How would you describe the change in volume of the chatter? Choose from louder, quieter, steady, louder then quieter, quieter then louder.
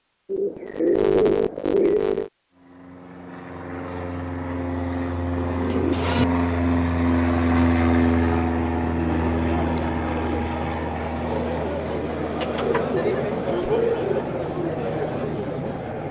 louder.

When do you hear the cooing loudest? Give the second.
1 s.